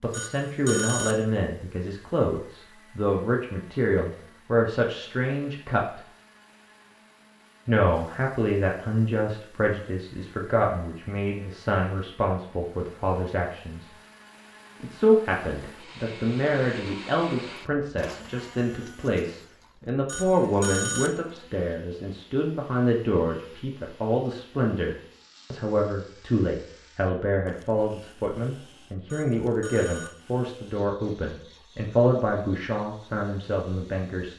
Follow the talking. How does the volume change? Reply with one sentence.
The loudness of the talking stays about the same.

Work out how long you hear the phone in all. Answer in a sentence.
You can hear the phone for 3 seconds altogether.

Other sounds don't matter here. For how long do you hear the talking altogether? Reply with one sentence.
You can hear the talking for 32 seconds altogether.